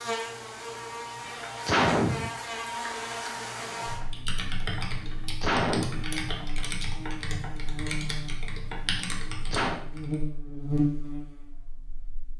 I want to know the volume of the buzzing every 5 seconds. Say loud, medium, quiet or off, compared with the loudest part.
loud, medium, loud.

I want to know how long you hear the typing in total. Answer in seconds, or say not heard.
6 s.